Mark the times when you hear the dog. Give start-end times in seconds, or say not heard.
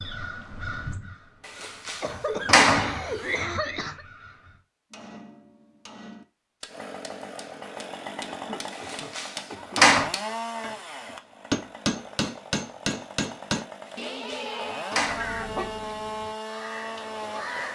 not heard.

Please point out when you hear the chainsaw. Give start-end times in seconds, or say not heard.
6.7-17.7.